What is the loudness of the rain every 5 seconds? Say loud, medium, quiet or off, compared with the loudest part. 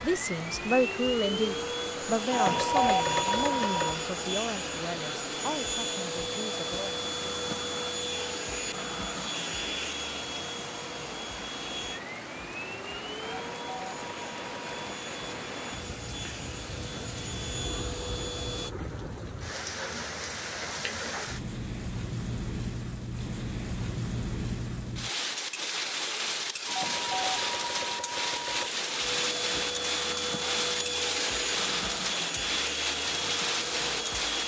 medium, medium, medium, medium, loud, loud, loud.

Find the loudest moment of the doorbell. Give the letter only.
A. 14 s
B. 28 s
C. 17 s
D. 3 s
D.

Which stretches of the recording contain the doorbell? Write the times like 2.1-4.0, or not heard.
2.3-4.0, 13.2-14.8, 26.6-28.7.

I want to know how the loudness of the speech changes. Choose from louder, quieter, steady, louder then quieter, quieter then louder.
quieter.